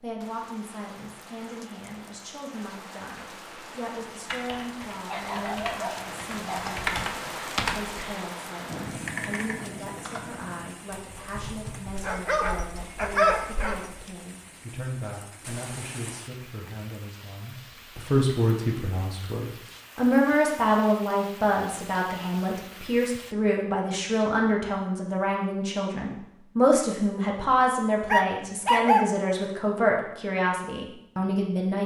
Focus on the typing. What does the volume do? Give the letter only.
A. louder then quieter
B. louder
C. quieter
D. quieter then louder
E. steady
A.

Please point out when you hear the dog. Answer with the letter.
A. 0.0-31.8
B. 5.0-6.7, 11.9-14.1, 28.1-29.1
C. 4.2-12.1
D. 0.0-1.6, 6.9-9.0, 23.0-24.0
B.